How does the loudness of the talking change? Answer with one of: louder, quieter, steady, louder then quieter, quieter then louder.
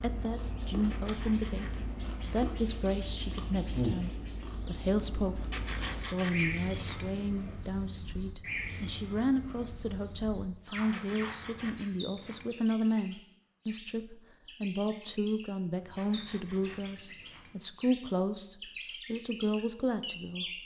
steady.